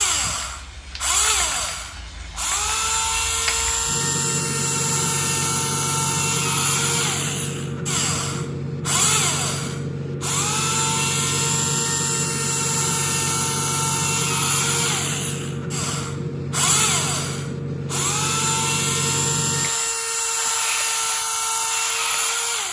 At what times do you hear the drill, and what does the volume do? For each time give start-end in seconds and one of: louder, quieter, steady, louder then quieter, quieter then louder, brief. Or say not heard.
0.0-22.6 steady.